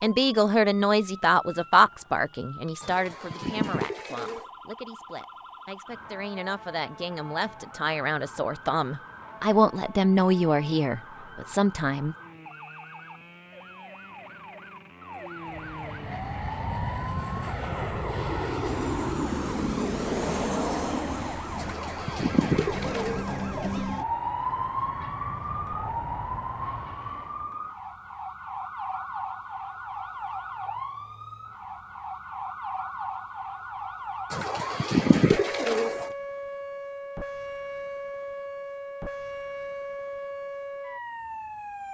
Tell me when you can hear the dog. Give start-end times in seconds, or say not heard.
not heard.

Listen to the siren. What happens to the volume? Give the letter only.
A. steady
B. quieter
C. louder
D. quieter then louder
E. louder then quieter
C.